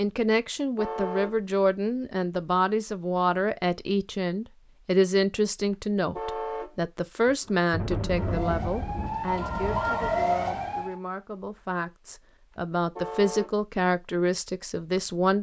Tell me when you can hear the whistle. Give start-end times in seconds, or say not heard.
not heard.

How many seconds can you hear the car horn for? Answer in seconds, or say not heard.
2 s.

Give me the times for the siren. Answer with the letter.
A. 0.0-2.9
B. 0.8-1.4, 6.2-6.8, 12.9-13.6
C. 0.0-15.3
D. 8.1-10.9
D.